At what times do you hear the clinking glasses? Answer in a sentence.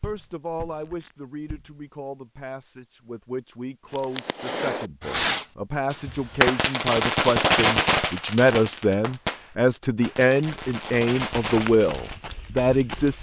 You can't hear the clinking glasses here.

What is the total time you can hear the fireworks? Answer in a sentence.
You can hear the fireworks for 8 seconds altogether.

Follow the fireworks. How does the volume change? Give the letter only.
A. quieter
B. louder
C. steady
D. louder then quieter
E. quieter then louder
A.